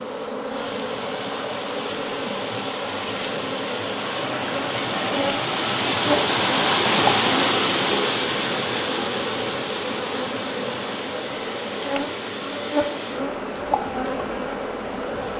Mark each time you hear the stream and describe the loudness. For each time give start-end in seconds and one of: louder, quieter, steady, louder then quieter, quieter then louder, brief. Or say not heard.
0.0-15.3 louder then quieter.